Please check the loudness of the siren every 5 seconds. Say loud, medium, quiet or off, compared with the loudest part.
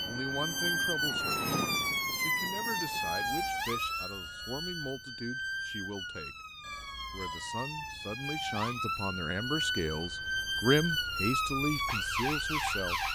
loud, medium, loud.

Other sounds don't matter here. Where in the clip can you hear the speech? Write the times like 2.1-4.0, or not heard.
0.0-1.4, 2.1-6.3, 7.1-13.0.